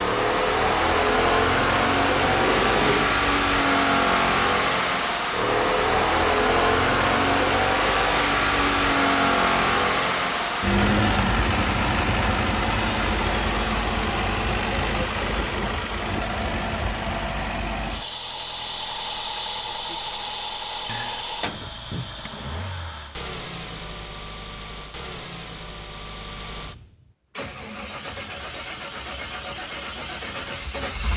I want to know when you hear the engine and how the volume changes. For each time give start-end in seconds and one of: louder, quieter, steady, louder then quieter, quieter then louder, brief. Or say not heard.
0.0-31.1 quieter.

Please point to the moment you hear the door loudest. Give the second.
3 s.